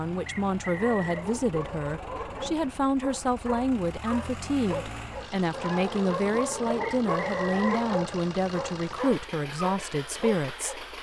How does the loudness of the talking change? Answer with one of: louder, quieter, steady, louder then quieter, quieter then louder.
steady.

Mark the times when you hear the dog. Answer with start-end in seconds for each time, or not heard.
0.7-10.8.